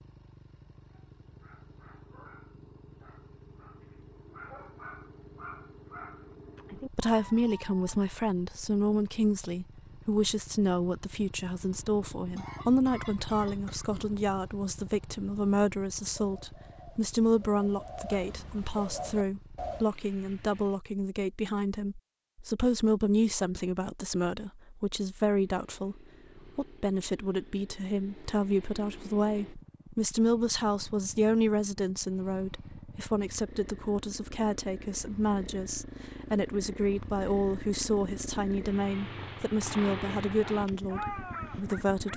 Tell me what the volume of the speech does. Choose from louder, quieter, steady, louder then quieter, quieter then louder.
steady.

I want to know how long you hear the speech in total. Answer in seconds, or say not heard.
35 s.